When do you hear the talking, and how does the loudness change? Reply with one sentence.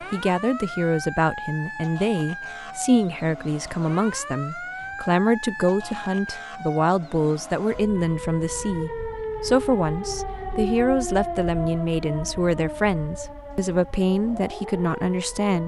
You can hear the talking from 0.0 to 15.6 s, at a steady volume.